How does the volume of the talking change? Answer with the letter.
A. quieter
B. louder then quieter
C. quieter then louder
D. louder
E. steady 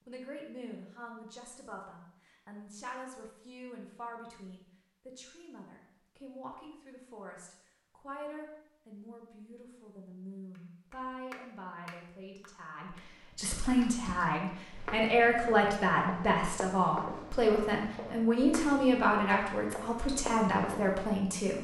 D.